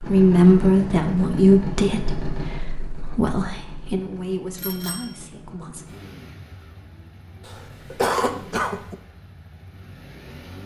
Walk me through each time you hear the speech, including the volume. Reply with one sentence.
You can hear the speech from 0.0 to 6.0 s, getting quieter.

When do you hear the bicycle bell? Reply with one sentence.
The bicycle bell can be heard from 4.5 to 5.2 s.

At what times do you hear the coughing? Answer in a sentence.
The coughing can be heard from 7.5 to 8.9 s.